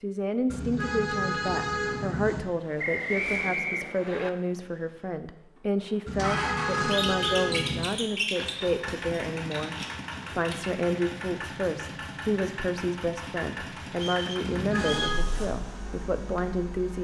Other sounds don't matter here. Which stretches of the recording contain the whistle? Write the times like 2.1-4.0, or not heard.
2.8-4.3, 13.9-15.2.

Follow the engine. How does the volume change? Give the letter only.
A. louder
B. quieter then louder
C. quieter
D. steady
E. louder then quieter
E.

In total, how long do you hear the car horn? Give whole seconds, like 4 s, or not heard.
5 s.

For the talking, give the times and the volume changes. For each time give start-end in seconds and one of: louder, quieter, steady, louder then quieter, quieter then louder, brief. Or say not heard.
0.0-16.9 steady.